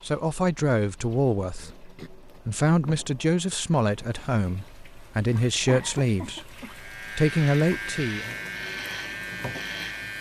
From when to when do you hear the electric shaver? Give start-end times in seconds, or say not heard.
6.7-10.1.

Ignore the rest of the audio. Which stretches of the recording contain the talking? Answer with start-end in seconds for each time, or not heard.
0.0-8.3.